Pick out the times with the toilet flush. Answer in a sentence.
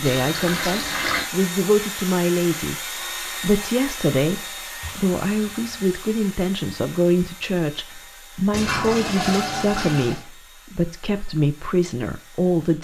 You can hear the toilet flush from 0.0 to 1.3 s, from 4.8 to 5.8 s and from 8.5 to 10.2 s.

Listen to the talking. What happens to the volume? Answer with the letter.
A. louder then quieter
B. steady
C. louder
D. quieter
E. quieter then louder
B.